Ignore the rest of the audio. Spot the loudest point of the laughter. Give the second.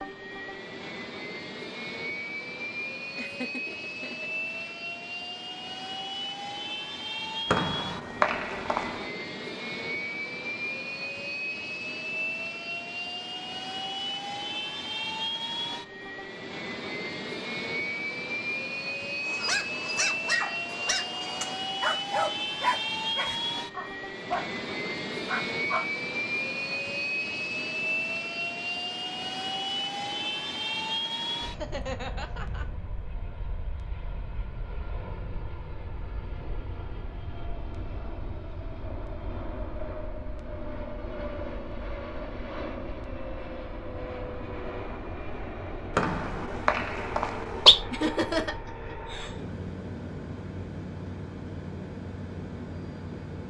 48 s.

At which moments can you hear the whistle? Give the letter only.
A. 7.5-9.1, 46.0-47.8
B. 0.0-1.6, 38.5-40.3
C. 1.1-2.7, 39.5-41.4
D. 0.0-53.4
A.